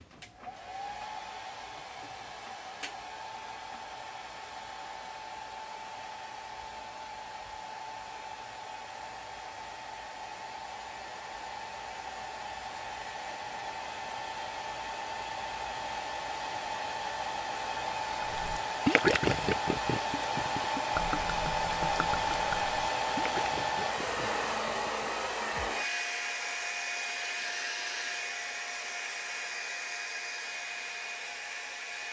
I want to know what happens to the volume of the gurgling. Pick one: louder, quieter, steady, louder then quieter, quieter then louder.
quieter.